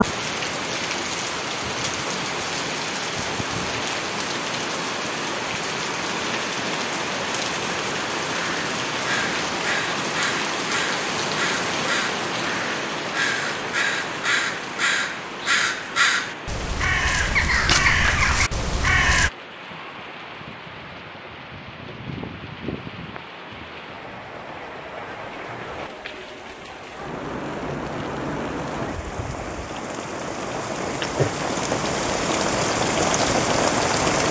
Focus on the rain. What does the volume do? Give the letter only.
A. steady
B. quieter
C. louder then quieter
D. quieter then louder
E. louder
D.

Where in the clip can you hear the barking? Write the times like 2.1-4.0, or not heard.
not heard.